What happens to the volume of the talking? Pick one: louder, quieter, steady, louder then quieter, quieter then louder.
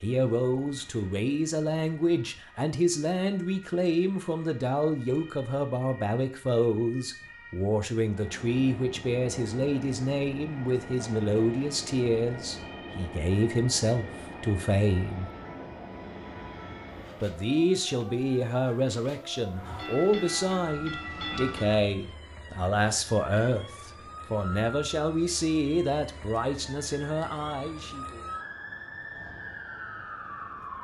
steady.